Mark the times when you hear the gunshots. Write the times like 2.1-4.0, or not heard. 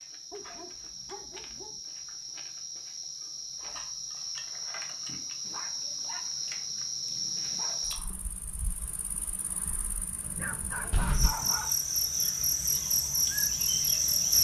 not heard.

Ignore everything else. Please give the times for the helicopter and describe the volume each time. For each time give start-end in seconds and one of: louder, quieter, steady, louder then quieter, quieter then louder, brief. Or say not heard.
not heard.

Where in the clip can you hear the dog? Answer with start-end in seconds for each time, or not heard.
0.3-1.8, 5.5-7.8, 10.2-11.8.